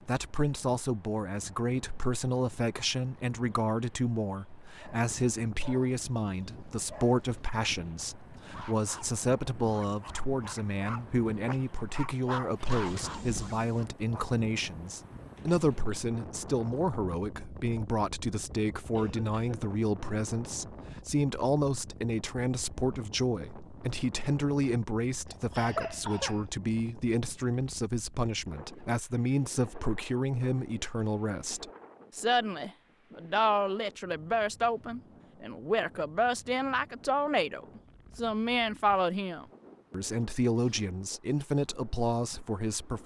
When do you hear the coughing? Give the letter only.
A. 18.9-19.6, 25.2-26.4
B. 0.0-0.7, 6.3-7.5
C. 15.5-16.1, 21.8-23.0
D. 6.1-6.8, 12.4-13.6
A.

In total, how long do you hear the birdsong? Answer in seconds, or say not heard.
not heard.